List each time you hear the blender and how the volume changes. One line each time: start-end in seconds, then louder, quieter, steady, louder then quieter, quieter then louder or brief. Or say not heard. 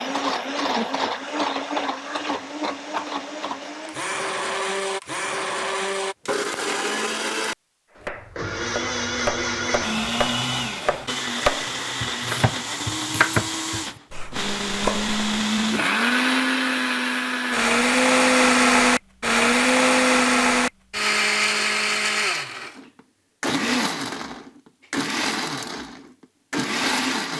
0.0-27.3 louder then quieter.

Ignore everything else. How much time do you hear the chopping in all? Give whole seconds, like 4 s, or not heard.
7 s.